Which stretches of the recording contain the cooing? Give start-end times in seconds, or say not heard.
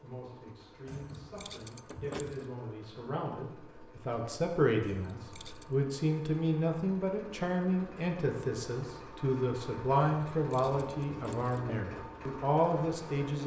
not heard.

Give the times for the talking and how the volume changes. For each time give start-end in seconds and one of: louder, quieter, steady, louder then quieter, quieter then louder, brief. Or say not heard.
0.0-13.4 louder.